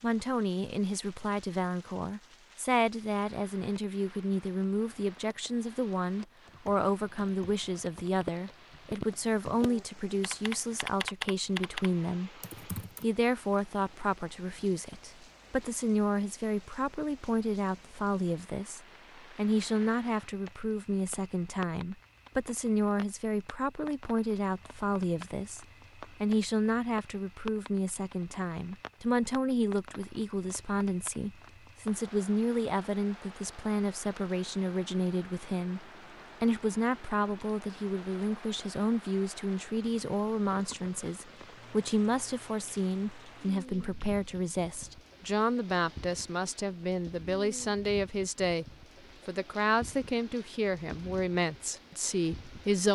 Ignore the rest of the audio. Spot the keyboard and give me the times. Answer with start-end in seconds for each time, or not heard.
6.5-13.1.